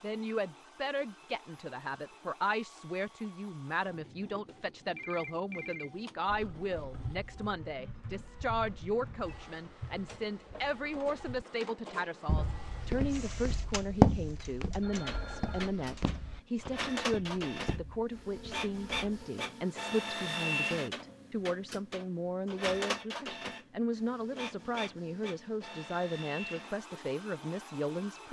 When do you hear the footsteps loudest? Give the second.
14 s.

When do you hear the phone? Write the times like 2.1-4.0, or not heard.
5.0-5.9, 14.8-15.7.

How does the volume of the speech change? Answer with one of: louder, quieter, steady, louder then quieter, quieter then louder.
steady.